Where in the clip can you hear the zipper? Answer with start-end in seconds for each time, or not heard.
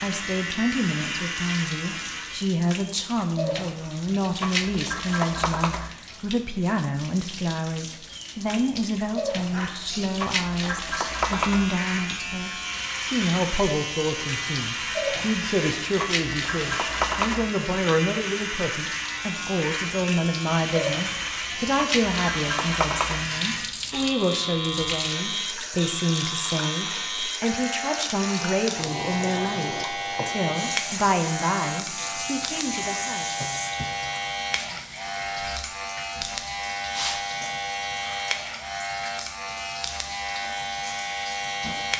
not heard.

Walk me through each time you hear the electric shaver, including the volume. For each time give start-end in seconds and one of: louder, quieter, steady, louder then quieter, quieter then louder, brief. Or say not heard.
0.0-2.5 brief
10.9-41.9 steady.